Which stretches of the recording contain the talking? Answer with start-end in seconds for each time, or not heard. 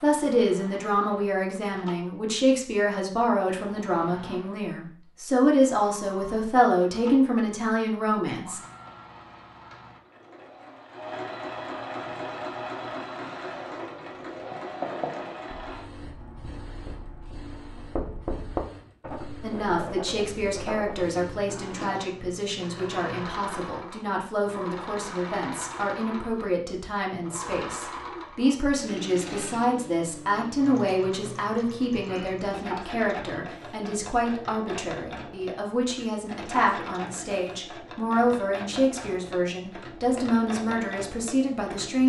0.0-8.6, 19.4-42.0.